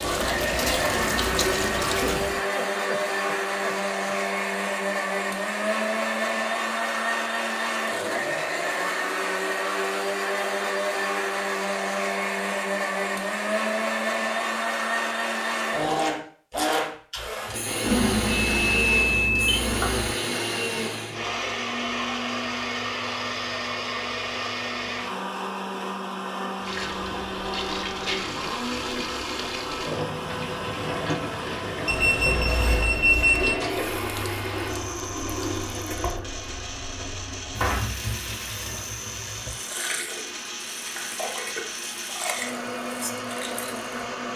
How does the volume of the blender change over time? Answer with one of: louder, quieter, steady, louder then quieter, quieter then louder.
quieter.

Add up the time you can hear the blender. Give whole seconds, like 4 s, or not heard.
44 s.